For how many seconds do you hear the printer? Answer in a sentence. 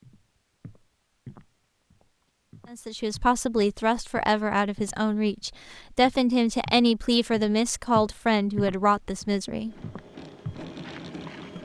The printer can be heard for 2 seconds in total.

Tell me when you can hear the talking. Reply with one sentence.
The talking can be heard from 2.7 to 9.8 s.